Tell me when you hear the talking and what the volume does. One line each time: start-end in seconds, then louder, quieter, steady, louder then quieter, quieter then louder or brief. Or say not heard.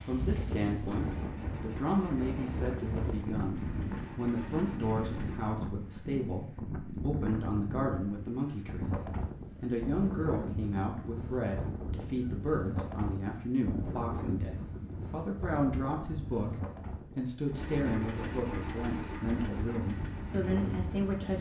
0.0-21.3 steady.